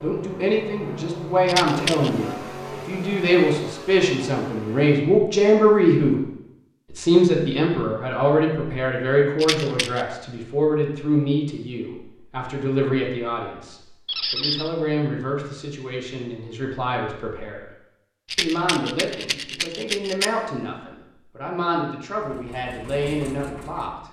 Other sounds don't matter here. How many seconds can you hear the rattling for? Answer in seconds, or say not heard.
3 s.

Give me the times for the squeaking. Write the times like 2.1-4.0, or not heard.
14.1-14.7.